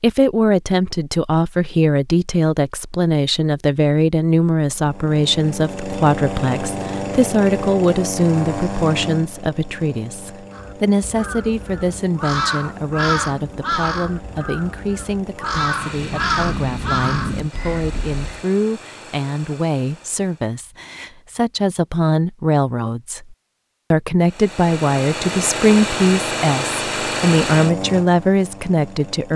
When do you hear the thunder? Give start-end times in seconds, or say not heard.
15.6-17.5.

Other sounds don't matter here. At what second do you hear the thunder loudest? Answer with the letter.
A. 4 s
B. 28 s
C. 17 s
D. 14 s
C.